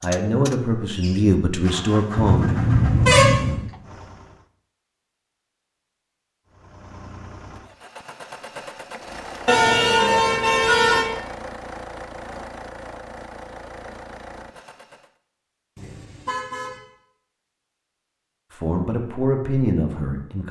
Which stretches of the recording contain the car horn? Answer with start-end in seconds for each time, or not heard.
2.1-3.6, 9.4-11.1, 15.8-16.8.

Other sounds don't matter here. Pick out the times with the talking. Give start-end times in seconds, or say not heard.
0.0-2.5, 18.5-20.4.